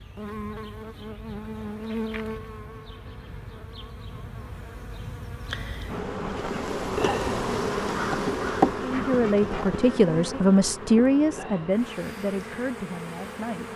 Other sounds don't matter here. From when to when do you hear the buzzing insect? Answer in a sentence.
You can hear the buzzing insect from 0.0 to 13.7 s.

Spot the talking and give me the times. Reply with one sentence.
You can hear the talking from 8.8 to 13.7 s.